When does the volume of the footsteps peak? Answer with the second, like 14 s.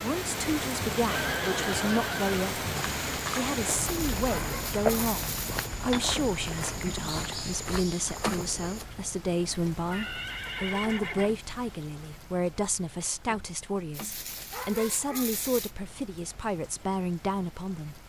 5 s.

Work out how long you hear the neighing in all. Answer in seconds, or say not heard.
3 s.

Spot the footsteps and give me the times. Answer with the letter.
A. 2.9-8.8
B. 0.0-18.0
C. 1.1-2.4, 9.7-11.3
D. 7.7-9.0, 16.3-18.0
A.